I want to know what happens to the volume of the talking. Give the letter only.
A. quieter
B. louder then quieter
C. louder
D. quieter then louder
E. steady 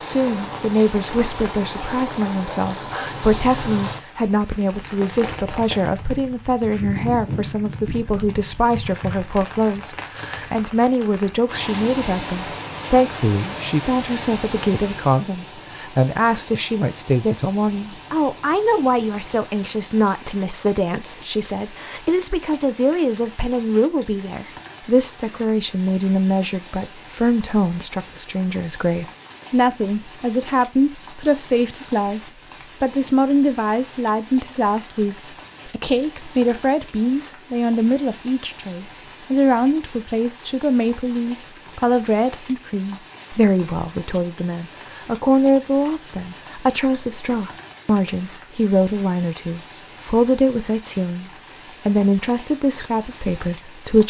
E.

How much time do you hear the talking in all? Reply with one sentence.
You can hear the talking for 54 seconds altogether.